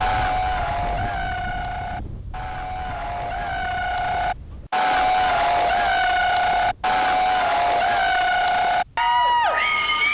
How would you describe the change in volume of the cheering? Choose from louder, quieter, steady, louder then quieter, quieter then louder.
louder.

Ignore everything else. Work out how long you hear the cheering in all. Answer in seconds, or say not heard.
10 s.